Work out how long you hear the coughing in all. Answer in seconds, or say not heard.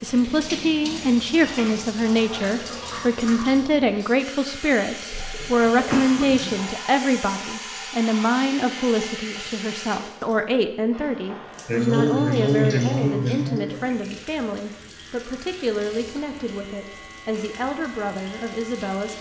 4 s.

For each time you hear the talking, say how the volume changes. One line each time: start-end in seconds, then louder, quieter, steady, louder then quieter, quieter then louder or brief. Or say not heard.
0.0-19.1 quieter.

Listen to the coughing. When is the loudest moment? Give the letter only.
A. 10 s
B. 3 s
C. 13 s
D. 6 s
C.